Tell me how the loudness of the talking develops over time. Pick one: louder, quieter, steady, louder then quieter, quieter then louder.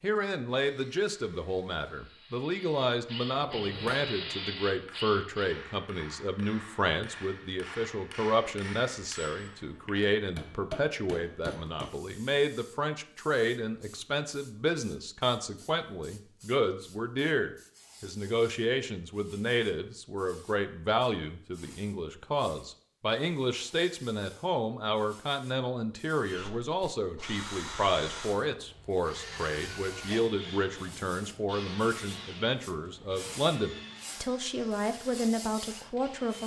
steady.